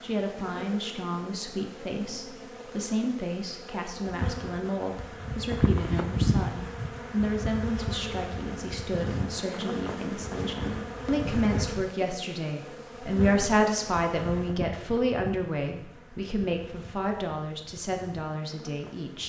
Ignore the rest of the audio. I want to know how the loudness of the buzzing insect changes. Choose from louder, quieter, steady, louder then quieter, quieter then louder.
louder then quieter.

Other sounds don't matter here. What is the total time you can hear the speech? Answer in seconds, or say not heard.
19 s.